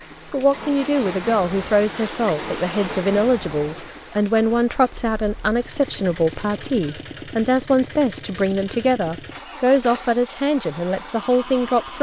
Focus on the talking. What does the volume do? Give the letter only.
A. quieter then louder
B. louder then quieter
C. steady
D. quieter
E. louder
C.